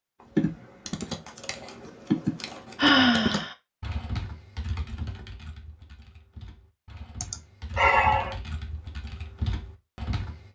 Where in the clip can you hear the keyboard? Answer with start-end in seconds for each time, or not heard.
0.2-10.5.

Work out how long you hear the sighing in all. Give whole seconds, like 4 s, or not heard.
2 s.